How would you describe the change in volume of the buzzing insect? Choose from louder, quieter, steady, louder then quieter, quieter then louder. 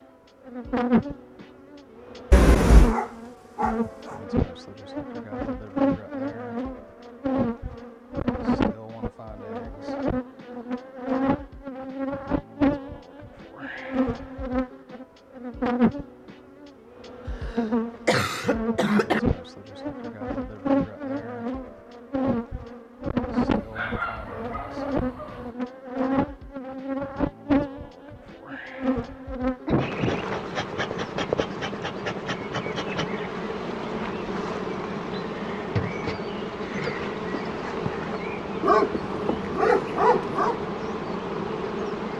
steady.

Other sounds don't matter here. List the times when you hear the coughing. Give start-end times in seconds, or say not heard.
2.3-3.0, 17.4-19.2, 29.6-30.2.